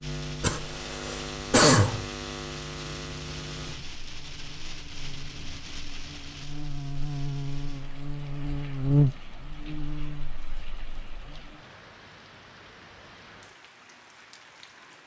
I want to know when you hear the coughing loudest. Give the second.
2 s.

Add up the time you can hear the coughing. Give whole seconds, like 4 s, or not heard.
2 s.